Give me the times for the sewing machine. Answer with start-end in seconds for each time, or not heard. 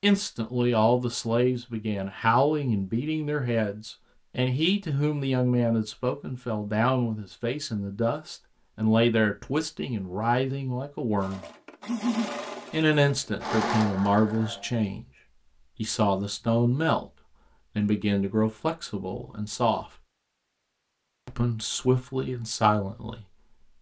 11.2-14.7.